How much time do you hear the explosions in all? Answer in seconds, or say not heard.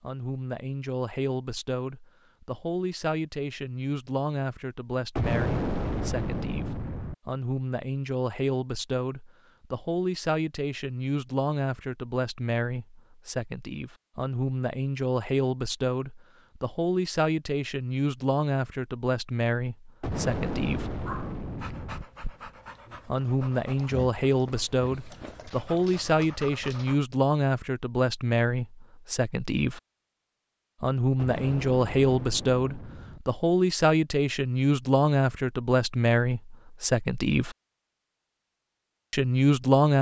6 s.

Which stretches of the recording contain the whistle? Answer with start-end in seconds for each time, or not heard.
not heard.